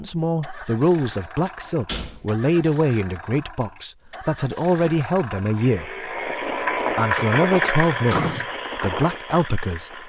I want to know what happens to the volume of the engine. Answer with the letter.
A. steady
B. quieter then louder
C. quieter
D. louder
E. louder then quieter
E.